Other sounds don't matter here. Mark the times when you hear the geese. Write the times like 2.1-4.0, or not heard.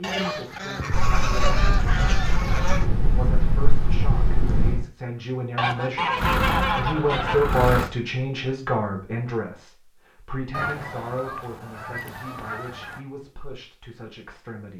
0.0-2.9, 5.5-7.5, 10.5-13.0.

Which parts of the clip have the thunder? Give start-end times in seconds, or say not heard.
0.9-4.8.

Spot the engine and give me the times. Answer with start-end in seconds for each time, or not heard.
6.2-7.9.